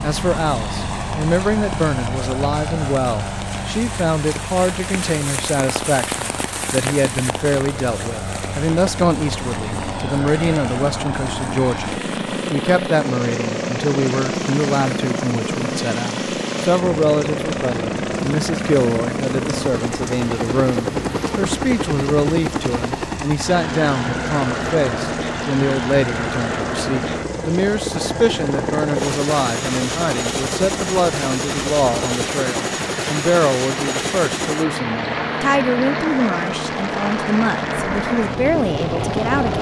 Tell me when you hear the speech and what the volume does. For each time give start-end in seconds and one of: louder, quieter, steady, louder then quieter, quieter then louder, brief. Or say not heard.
0.0-39.5 steady.